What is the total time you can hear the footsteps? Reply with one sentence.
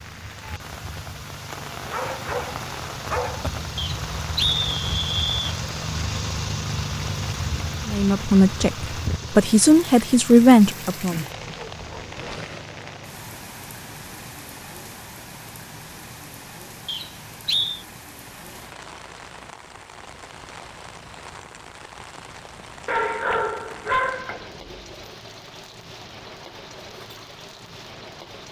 The footsteps can't be heard in this clip.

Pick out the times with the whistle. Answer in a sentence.
The whistle can be heard from 3.8 to 5.5 s and from 16.9 to 17.9 s.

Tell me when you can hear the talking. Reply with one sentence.
The talking can be heard from 7.8 to 11.2 s.